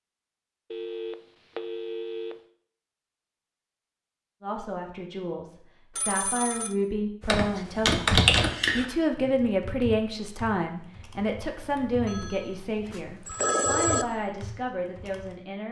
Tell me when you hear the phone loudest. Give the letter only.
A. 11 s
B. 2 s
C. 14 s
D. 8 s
C.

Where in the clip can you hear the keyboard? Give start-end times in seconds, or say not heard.
7.2-15.4.